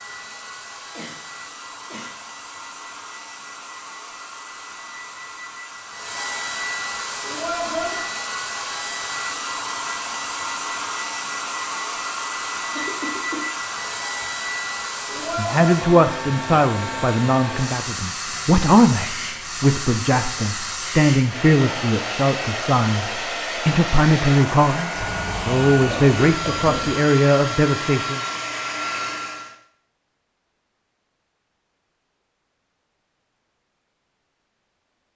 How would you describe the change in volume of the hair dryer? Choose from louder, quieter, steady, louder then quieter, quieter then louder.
louder.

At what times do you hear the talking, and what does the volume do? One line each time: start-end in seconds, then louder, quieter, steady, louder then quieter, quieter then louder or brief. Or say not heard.
15.3-28.2 steady.